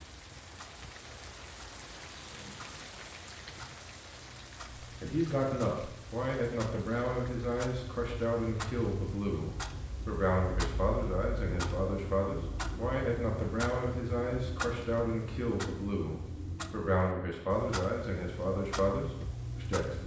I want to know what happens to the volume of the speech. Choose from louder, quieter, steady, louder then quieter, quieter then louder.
steady.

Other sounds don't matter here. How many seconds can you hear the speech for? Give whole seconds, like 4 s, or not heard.
15 s.